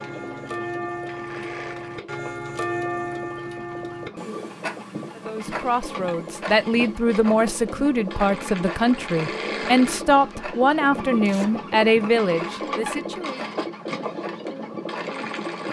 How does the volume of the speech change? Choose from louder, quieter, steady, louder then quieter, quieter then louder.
steady.